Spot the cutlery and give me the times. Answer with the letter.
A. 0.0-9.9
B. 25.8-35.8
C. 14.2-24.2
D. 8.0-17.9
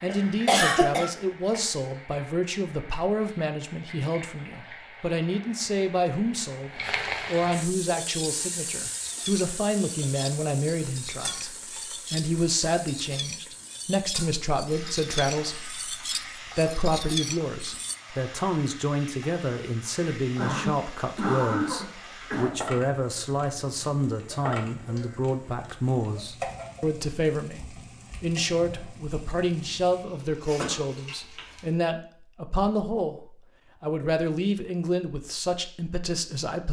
D.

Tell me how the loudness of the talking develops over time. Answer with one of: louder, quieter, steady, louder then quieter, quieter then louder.
steady.